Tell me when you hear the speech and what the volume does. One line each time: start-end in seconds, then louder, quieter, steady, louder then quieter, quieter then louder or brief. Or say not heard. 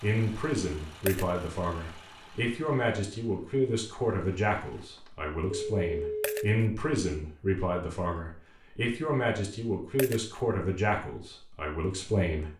0.0-12.5 steady.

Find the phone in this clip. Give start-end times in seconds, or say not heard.
5.0-6.4.